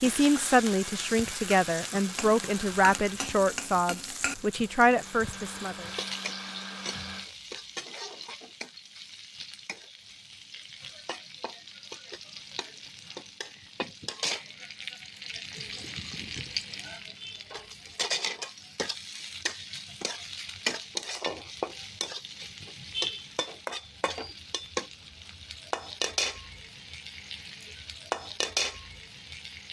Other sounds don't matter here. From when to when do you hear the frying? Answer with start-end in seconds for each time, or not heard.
0.0-29.6.